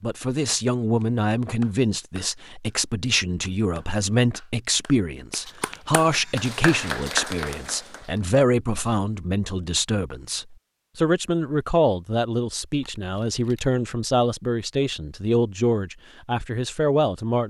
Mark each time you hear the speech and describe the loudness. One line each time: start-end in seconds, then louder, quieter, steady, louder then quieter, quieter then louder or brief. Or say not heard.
0.0-17.4 steady.